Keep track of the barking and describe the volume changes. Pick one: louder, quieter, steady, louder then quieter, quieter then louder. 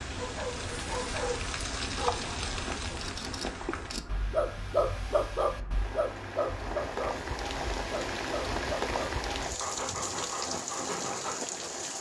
louder then quieter.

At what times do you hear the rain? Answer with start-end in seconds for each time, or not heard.
0.0-11.9.